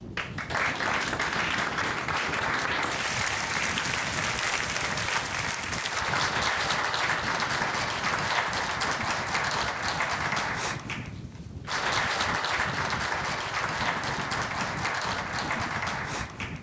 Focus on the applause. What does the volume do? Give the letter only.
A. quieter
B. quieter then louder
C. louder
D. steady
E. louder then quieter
D.